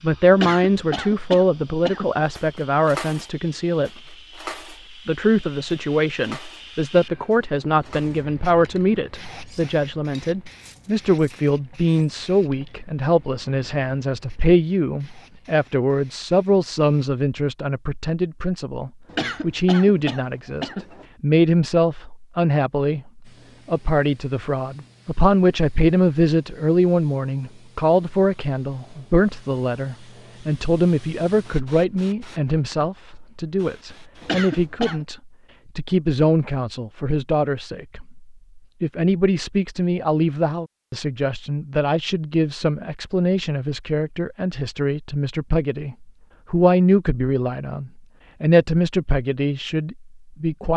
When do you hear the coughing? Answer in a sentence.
You can hear the coughing from 0.3 to 2.2 s, from 19.1 to 21.1 s and from 34.2 to 35.0 s.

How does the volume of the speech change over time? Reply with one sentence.
The loudness of the speech stays about the same.